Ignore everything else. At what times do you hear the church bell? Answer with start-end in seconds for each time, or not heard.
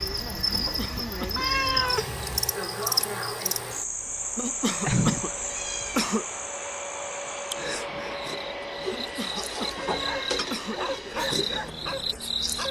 not heard.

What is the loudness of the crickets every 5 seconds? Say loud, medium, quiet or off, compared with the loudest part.
loud, medium, loud.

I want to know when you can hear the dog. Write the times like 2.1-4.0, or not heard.
9.8-12.6.